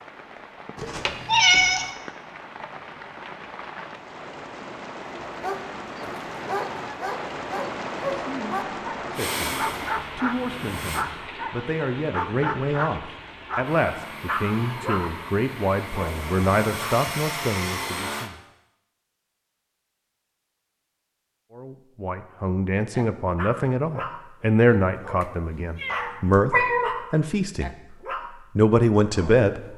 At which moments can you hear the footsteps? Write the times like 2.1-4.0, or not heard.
not heard.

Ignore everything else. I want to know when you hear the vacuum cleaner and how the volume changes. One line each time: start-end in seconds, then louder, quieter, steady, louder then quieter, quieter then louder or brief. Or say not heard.
9.2-11.1 brief
13.6-18.3 louder.